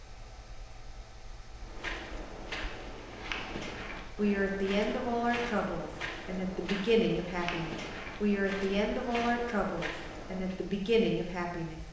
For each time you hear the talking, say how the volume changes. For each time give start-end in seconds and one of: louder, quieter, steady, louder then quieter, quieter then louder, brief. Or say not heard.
4.2-11.8 steady.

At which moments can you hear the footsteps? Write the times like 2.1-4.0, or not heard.
1.6-10.6.